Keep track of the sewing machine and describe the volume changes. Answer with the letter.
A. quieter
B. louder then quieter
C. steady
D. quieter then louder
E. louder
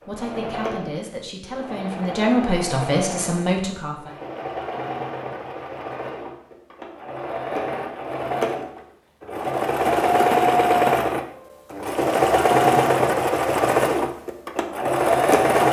E.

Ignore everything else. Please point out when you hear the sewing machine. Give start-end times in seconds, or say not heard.
0.0-15.6.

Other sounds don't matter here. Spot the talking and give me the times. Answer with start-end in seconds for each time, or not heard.
0.0-4.2.